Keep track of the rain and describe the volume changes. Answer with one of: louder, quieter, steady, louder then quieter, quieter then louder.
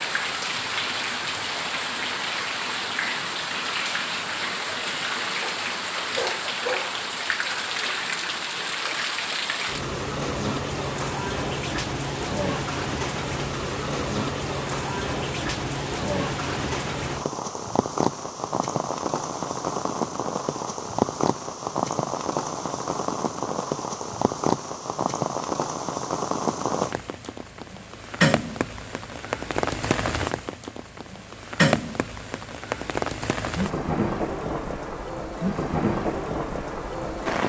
steady.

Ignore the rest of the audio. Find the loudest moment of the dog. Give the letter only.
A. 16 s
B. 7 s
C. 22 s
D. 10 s
B.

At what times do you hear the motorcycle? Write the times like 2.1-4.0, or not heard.
not heard.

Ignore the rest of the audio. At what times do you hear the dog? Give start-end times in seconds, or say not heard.
5.4-7.0.